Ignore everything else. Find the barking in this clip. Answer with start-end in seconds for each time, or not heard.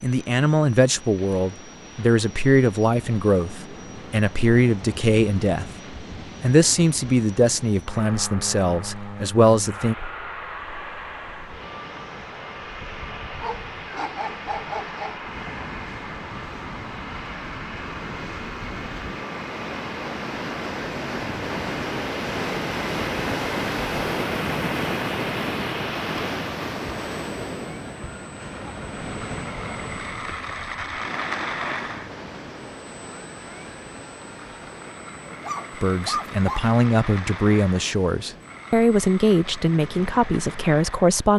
13.4-15.2, 35.2-36.7.